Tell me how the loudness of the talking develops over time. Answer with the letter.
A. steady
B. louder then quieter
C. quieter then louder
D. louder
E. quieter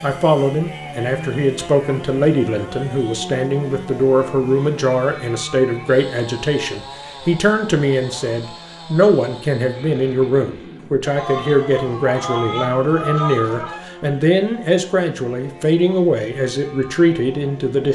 A.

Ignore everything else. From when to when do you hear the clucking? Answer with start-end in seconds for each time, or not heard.
11.1-13.8.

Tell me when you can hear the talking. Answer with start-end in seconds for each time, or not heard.
0.0-17.9.